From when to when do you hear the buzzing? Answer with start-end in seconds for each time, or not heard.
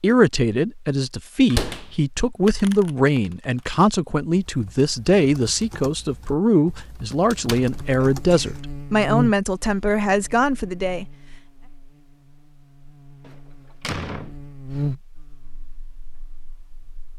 7.5-17.1.